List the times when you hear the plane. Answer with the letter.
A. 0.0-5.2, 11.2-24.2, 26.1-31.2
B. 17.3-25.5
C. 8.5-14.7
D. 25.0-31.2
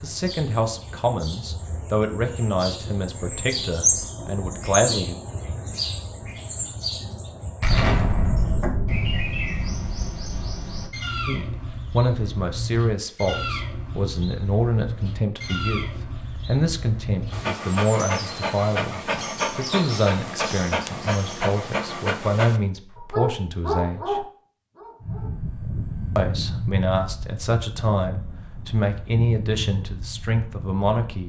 D.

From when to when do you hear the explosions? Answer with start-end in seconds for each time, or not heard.
7.6-10.7.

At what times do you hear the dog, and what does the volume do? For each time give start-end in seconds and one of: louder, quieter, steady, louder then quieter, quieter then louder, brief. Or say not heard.
17.3-25.5 steady.